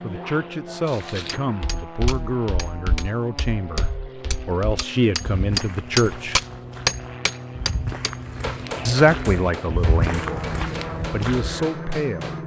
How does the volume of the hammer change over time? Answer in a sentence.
The volume of the hammer goes up, then down.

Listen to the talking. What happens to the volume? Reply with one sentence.
The volume of the talking goes up, then down.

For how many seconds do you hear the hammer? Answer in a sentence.
The hammer can be heard for 11 seconds in total.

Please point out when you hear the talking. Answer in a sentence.
You can hear the talking from 0.0 to 6.4 s and from 8.8 to 12.3 s.